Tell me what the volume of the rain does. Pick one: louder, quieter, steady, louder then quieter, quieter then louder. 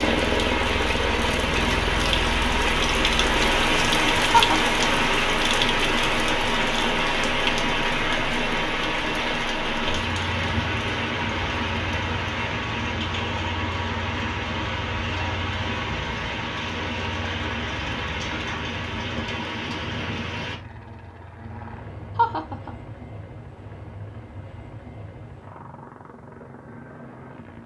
quieter.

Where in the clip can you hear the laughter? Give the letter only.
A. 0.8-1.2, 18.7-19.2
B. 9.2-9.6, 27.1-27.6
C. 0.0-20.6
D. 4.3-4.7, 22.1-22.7
D.